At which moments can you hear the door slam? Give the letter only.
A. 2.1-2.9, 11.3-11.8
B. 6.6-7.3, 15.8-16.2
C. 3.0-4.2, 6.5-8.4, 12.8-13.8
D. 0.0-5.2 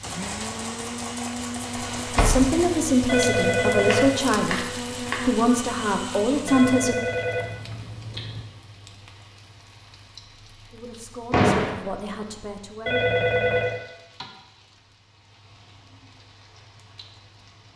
A.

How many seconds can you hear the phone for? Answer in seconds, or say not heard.
4 s.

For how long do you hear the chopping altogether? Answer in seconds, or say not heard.
5 s.